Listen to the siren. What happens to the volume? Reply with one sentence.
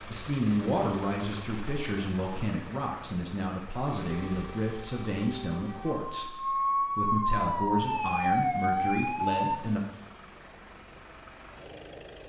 The loudness of the siren goes up.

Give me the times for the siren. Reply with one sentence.
You can hear the siren from 4.0 to 9.6 s.